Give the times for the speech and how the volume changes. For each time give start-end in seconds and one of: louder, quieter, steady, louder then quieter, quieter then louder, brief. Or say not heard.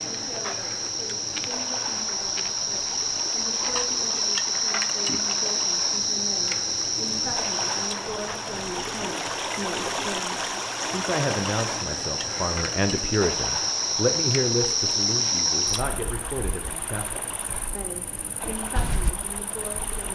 0.0-20.0 louder then quieter.